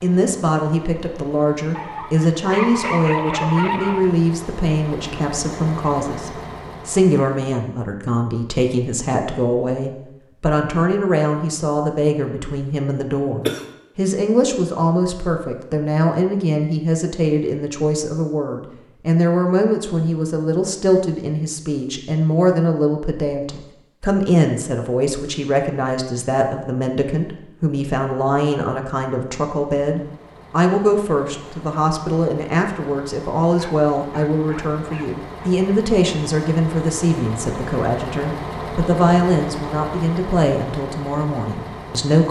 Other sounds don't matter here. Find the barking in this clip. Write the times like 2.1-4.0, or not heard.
1.8-4.2, 33.5-35.5.